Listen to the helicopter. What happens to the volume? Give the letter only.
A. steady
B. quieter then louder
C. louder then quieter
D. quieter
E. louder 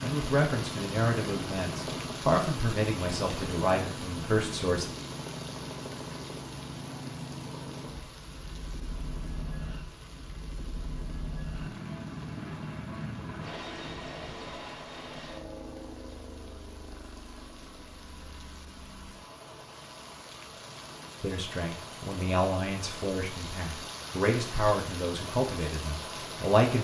D.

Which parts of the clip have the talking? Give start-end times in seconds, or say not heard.
0.0-4.9, 21.2-26.7.